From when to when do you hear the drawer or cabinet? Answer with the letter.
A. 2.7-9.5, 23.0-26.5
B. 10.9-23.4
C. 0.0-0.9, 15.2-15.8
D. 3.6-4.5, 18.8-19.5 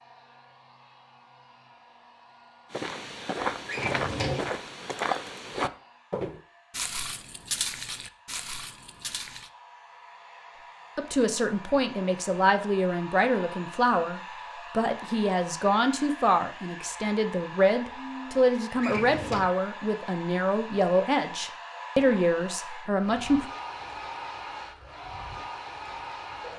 D.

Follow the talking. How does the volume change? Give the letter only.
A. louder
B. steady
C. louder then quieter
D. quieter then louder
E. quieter
B.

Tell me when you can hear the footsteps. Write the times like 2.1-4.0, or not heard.
2.7-9.5, 23.0-26.5.